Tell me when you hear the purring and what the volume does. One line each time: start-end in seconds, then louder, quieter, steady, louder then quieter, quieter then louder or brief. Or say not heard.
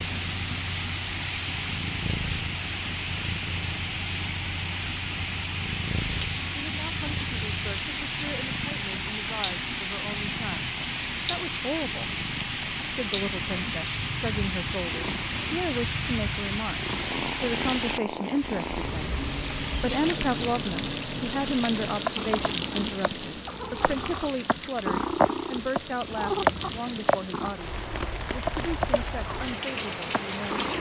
0.0-30.7 louder.